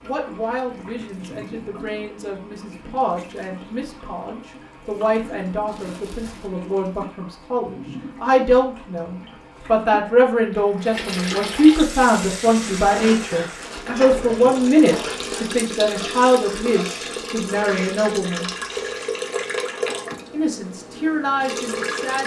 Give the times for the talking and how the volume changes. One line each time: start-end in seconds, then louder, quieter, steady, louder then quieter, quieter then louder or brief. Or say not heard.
0.0-18.5 louder
20.3-22.2 brief.